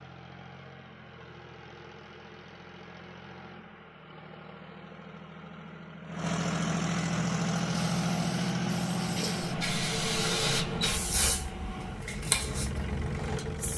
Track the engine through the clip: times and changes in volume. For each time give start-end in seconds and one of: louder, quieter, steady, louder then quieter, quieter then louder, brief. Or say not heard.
0.0-13.7 louder then quieter.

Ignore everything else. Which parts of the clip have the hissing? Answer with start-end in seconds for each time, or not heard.
7.2-13.7.